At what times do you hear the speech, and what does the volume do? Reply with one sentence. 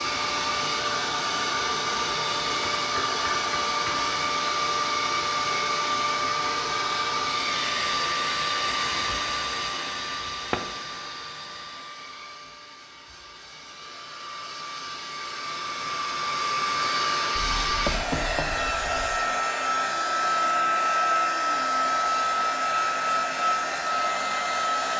You can't hear the speech here.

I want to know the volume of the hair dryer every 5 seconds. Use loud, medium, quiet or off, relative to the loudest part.
loud, loud, quiet, loud, loud.